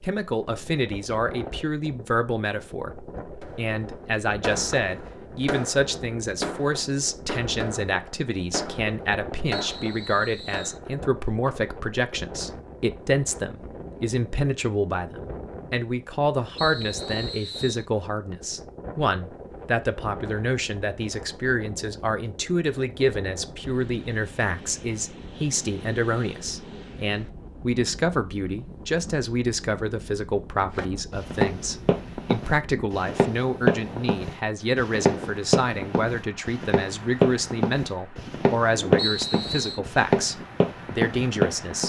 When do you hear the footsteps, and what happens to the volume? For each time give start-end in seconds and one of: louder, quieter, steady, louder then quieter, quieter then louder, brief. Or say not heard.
30.8-41.8 steady.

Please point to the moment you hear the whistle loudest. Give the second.
39 s.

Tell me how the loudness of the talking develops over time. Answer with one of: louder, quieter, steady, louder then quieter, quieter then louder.
steady.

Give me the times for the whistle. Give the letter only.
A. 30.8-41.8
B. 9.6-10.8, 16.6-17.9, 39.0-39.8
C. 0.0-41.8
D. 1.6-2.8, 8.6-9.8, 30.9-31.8
B.